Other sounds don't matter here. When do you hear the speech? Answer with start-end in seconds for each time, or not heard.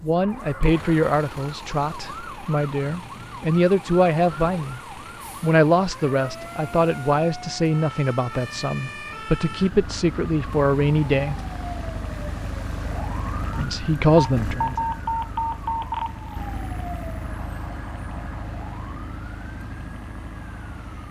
0.0-4.8, 5.4-11.3, 13.6-14.8.